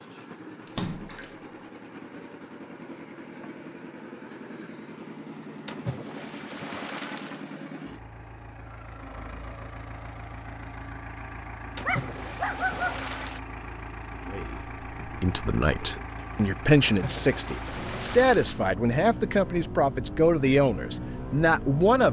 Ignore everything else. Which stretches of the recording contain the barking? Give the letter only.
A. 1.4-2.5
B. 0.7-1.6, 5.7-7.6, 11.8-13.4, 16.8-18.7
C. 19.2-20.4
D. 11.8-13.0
D.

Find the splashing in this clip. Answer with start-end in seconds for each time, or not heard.
0.7-1.6, 5.7-7.6, 11.8-13.4, 16.8-18.7.